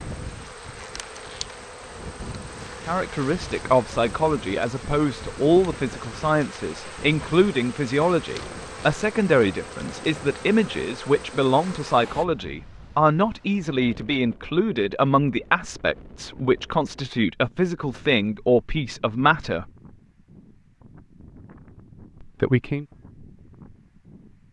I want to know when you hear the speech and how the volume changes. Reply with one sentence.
You can hear the speech from 2.9 to 19.6 s, at a steady volume; and briefly from 22.2 to 22.9 s.